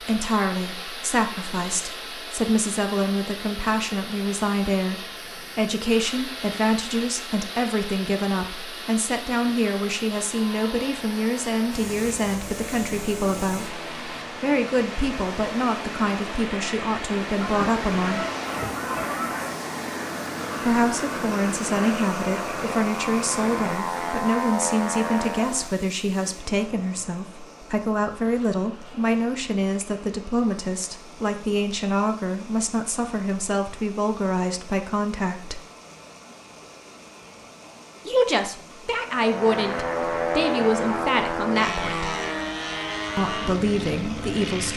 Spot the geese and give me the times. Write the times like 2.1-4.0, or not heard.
17.4-19.6.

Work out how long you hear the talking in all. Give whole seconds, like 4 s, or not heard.
39 s.